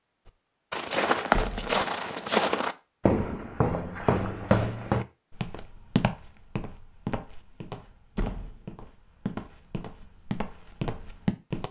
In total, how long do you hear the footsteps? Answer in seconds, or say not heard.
11 s.